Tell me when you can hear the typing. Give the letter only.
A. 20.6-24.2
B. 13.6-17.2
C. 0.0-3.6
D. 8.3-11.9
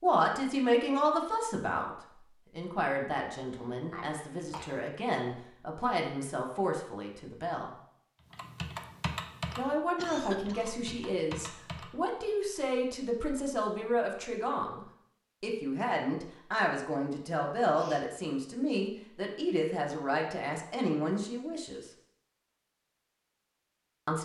D.